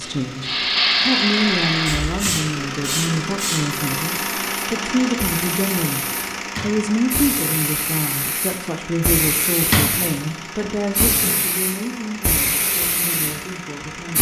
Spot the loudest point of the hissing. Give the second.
1 s.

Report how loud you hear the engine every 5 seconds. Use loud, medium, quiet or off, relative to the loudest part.
loud, loud, medium.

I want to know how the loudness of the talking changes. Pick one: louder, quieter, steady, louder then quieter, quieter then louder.
quieter.